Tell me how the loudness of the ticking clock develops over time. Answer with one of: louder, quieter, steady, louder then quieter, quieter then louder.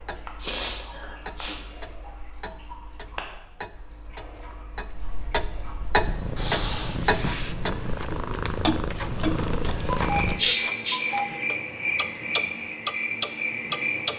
louder.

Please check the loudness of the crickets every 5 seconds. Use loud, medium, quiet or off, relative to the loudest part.
quiet, medium, loud.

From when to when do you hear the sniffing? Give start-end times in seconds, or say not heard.
0.4-1.6, 6.3-7.0, 10.3-11.0.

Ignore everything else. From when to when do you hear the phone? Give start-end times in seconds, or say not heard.
not heard.